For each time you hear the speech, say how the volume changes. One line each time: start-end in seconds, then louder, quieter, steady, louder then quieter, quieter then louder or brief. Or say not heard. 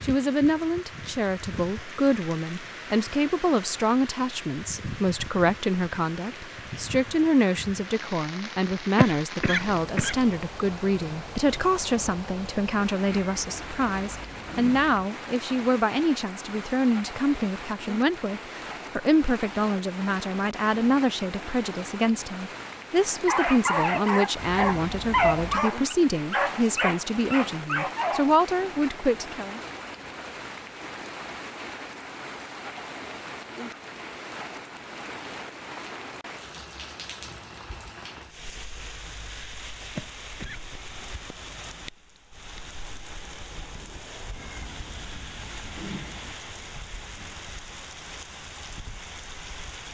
0.0-29.6 steady.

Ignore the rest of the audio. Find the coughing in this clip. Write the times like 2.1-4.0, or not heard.
8.9-10.3, 40.0-40.7.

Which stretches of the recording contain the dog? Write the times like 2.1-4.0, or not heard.
23.1-28.4.